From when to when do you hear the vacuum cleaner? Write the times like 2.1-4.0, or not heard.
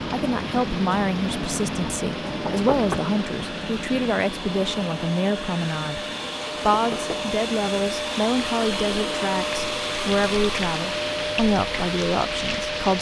0.0-12.9.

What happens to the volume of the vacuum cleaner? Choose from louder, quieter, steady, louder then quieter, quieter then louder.
louder.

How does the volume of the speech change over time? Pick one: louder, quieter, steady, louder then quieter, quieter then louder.
steady.